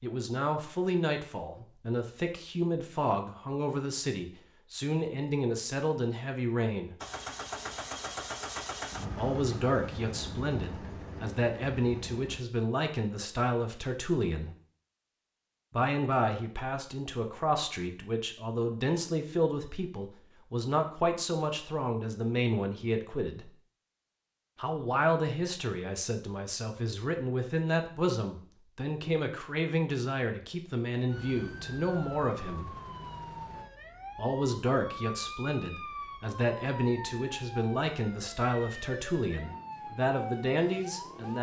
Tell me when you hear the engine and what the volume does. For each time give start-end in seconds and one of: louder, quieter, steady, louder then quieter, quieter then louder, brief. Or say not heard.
7.0-12.4 quieter.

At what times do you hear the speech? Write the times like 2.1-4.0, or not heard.
0.0-7.0, 9.2-14.5, 15.7-23.5, 24.6-32.8, 34.1-41.3.